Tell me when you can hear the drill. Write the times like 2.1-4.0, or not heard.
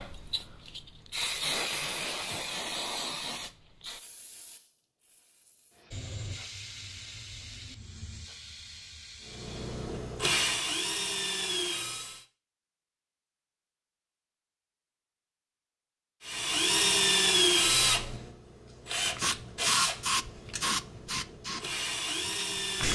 9.4-12.2, 16.2-22.8.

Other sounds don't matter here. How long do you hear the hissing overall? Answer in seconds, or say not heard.
14 s.